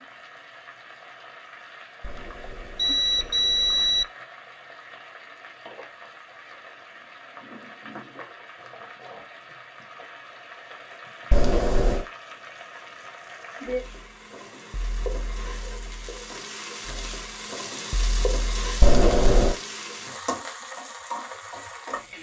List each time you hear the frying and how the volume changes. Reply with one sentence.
The frying can be heard from 0.0 to 22.1 s, getting louder.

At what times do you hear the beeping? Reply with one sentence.
The beeping can be heard from 2.0 to 4.0 s, from 11.3 to 12.1 s and from 18.8 to 19.6 s.